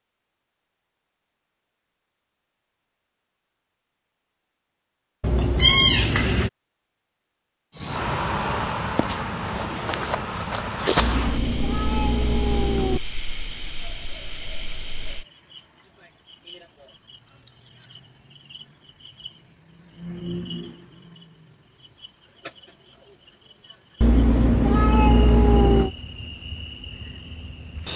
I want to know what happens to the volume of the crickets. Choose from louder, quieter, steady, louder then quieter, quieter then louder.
quieter.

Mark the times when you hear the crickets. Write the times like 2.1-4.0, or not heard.
7.8-27.9.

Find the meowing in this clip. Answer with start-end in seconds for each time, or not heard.
5.2-6.5, 10.9-13.0, 24.0-25.9.